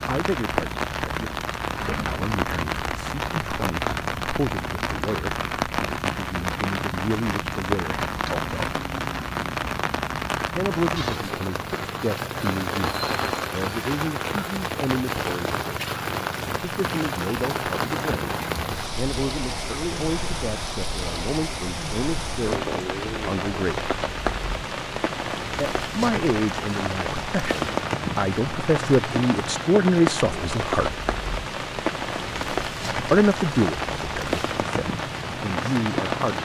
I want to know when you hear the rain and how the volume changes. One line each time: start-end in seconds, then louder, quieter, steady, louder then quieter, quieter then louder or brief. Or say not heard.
0.0-36.4 steady.